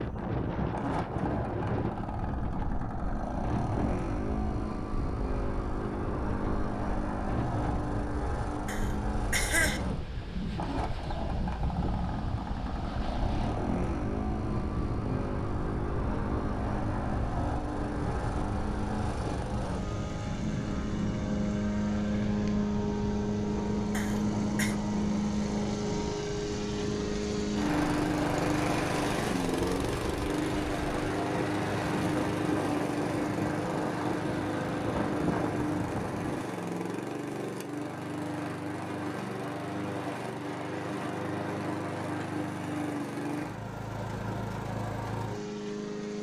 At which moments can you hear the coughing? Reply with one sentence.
You can hear the coughing from 8.7 to 9.8 s and from 23.9 to 24.8 s.